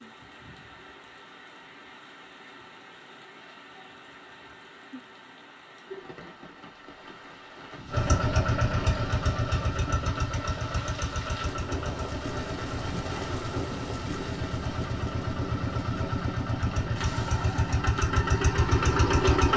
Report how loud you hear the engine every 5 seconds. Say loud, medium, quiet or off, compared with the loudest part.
off, loud, medium, loud.